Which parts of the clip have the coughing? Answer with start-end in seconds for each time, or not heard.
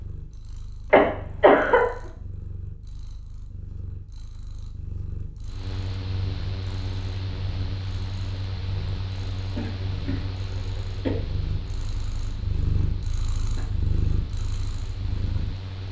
0.9-1.8, 9.6-11.2.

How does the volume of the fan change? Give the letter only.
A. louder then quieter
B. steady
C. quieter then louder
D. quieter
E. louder
D.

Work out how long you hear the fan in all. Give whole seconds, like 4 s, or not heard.
10 s.